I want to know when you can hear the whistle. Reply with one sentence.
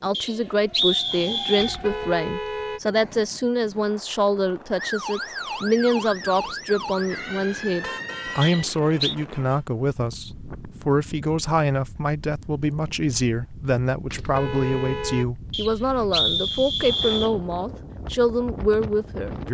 The whistle can be heard from 0.1 to 1.8 s, from 8.4 to 9.2 s and from 15.5 to 17.4 s.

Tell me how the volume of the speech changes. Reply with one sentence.
The loudness of the speech stays about the same.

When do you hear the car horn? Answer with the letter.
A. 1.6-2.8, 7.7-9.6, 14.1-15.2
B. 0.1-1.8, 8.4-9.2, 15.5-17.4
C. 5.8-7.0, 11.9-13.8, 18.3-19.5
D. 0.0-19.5
A.